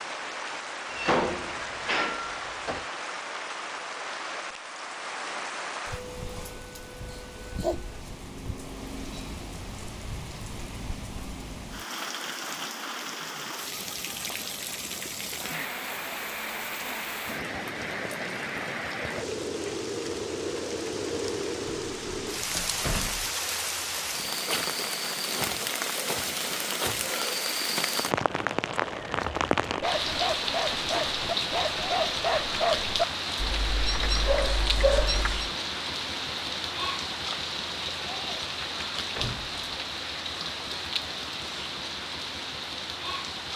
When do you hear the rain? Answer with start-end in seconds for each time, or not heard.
0.0-43.5.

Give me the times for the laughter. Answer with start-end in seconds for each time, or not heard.
not heard.